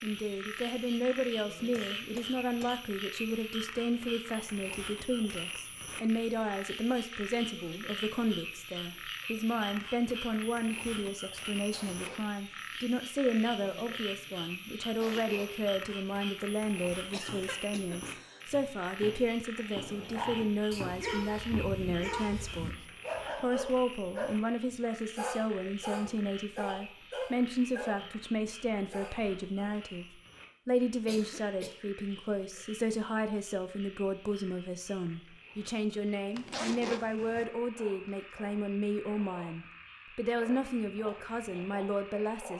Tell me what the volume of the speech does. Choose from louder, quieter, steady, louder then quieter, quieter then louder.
steady.